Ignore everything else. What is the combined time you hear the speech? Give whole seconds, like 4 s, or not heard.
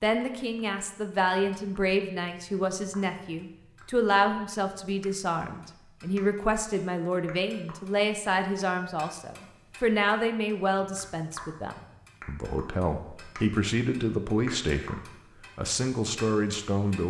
17 s.